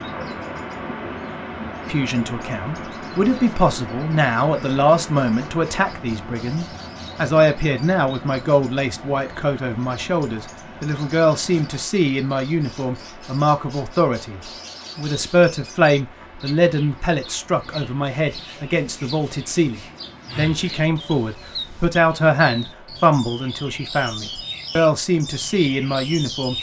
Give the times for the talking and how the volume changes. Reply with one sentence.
The talking can be heard from 1.9 to 26.5 s, at a steady volume.